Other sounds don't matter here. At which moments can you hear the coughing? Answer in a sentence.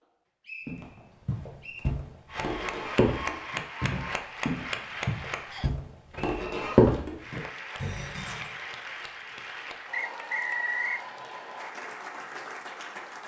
The coughing can't be heard in this clip.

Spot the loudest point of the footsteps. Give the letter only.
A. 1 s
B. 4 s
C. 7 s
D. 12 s
C.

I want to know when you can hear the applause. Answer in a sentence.
The applause can be heard from 2.2 to 5.6 s and from 7.2 to 13.2 s.